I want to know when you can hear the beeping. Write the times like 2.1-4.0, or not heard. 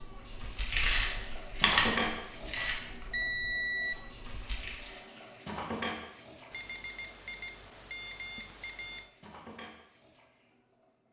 2.5-4.0, 6.5-9.1.